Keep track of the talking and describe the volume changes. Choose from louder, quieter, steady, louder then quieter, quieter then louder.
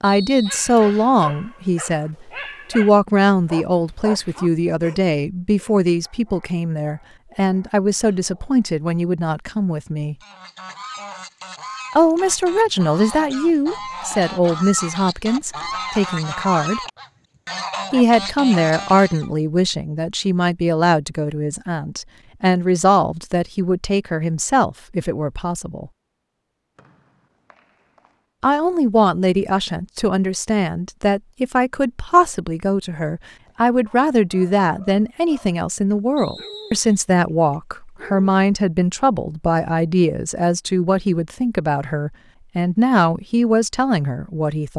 steady.